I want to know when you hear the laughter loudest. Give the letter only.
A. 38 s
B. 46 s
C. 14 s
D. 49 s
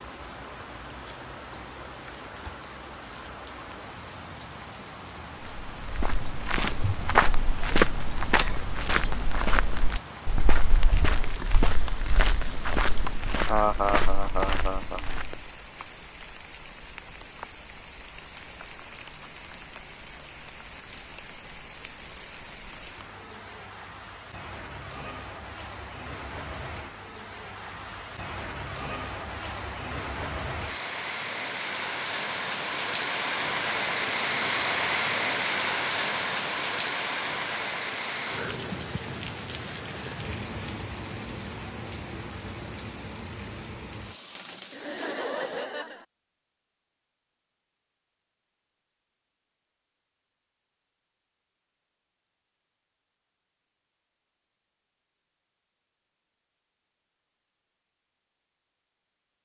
C.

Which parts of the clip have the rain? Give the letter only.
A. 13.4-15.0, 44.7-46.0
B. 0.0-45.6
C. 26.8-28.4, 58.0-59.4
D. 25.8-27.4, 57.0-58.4
B.